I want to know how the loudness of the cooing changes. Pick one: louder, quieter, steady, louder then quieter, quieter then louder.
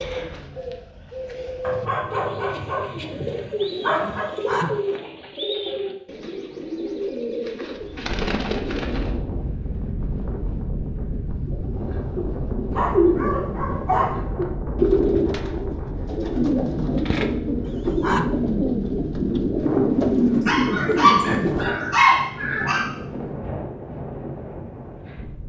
louder.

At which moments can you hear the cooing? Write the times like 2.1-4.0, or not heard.
0.0-9.2, 11.4-21.8.